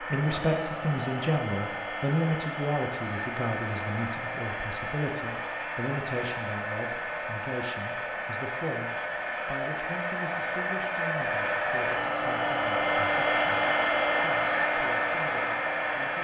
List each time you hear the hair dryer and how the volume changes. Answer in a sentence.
You can hear the hair dryer from 0.0 to 16.1 s, getting louder.